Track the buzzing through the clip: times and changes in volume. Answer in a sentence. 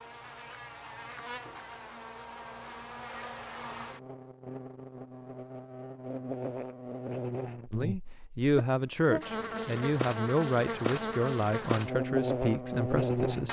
The buzzing can be heard from 0.0 to 13.4 s, getting louder.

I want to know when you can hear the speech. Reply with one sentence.
The speech can be heard from 7.7 to 13.4 s.